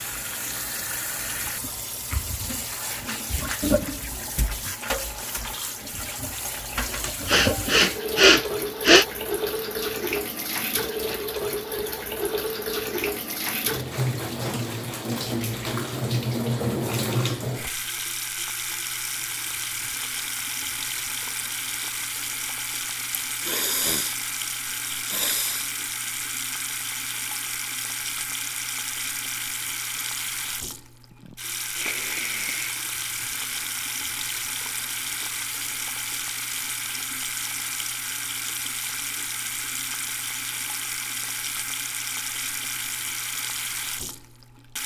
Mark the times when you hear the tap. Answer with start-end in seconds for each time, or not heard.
0.0-44.8.